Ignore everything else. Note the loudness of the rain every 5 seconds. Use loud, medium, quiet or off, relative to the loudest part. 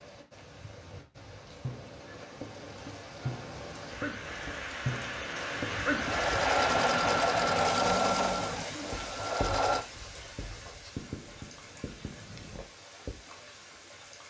medium, loud, quiet.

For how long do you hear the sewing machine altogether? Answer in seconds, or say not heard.
4 s.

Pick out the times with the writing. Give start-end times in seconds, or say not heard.
1.6-13.2.